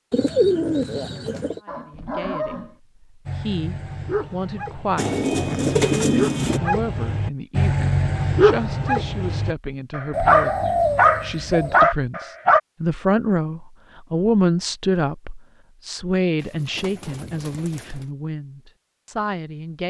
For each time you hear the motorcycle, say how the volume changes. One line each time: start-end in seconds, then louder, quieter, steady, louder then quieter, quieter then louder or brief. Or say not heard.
not heard.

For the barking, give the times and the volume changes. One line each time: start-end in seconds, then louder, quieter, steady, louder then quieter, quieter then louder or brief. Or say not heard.
1.6-12.6 louder.